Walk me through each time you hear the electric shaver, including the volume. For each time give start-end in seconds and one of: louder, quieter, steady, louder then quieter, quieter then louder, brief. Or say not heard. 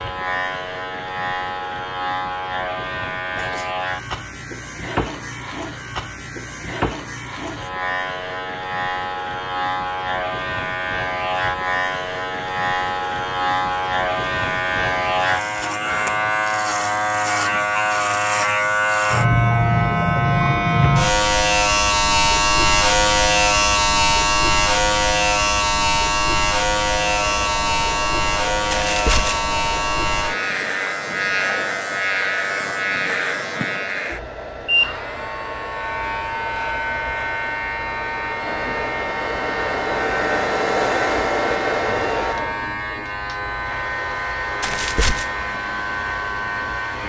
0.0-47.0 louder then quieter.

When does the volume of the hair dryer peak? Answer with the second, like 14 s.
41 s.